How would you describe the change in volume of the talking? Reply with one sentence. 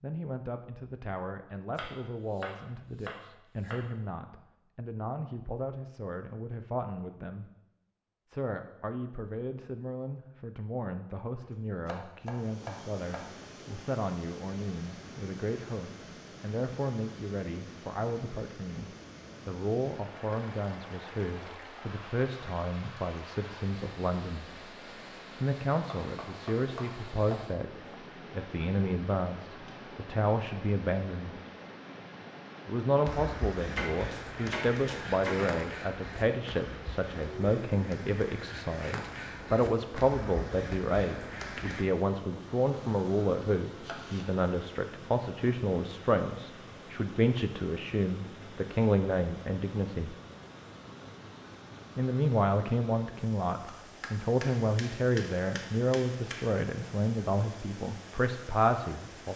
The volume of the talking goes up.